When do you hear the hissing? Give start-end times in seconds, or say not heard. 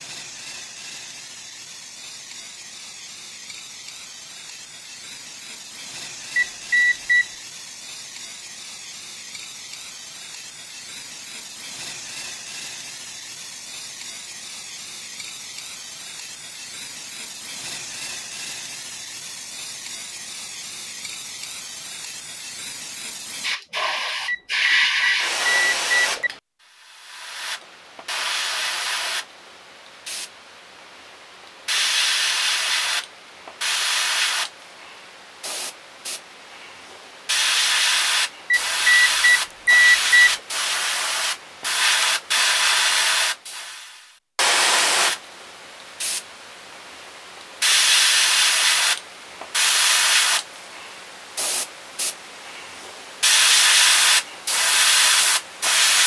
0.0-56.0.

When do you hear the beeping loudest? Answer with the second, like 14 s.
40 s.